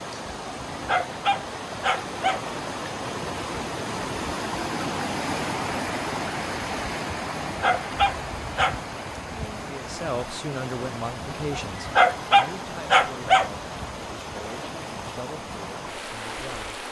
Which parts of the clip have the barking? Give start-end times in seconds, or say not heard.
0.7-2.4, 7.5-8.8, 11.5-13.5.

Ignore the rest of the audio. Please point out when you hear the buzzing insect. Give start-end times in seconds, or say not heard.
not heard.